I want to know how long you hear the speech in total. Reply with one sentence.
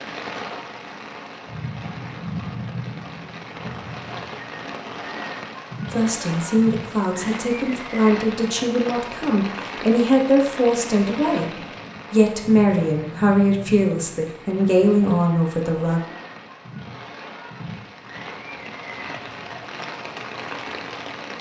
You can hear the speech for 10 seconds altogether.